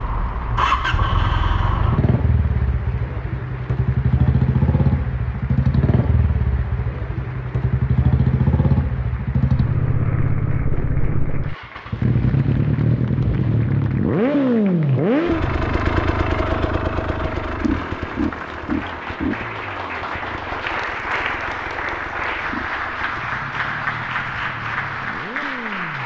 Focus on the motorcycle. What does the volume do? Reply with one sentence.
The loudness of the motorcycle goes down.